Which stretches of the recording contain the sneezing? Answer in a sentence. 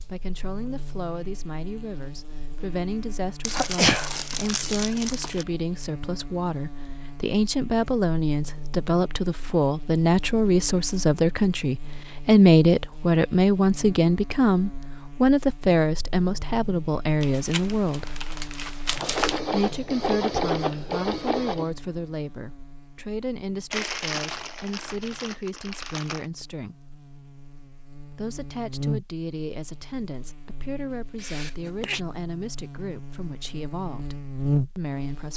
You can hear the sneezing from 3.5 to 4.1 s and from 31.1 to 32.0 s.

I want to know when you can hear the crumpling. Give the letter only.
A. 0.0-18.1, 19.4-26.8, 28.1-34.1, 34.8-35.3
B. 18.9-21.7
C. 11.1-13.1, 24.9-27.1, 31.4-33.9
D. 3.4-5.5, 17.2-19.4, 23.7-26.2
D.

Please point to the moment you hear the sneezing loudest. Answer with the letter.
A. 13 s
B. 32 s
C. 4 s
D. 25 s
C.